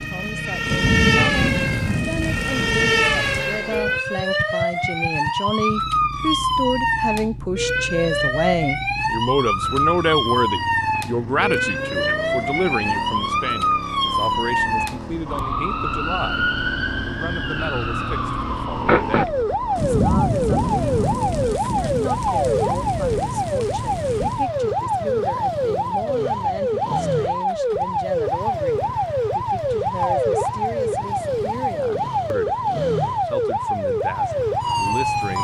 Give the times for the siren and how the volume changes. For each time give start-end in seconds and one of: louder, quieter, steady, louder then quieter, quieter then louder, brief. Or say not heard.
0.0-35.3 steady.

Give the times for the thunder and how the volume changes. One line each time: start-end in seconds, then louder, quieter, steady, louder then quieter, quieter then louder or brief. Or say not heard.
0.7-3.5 brief
19.8-24.4 quieter.